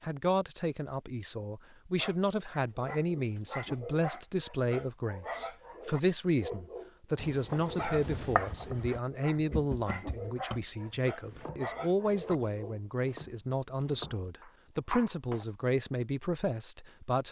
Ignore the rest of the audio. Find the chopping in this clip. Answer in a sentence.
The chopping can be heard from 7.2 to 15.4 s.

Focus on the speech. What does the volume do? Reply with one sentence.
The loudness of the speech stays about the same.